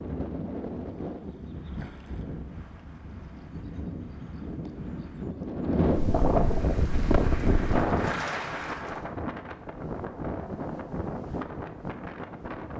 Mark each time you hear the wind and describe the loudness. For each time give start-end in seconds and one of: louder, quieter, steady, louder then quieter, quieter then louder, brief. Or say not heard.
0.0-12.7 louder then quieter.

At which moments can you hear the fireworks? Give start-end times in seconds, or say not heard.
not heard.